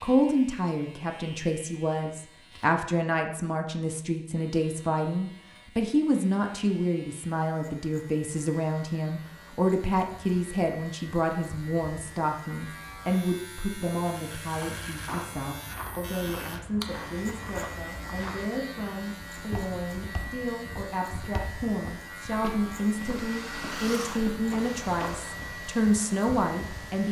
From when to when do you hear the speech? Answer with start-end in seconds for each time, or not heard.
0.0-27.0.